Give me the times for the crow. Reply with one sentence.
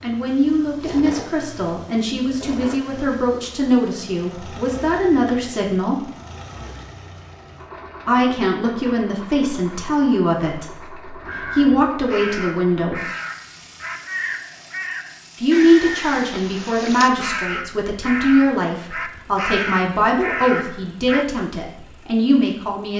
The crow can be heard from 11.2 to 21.2 s.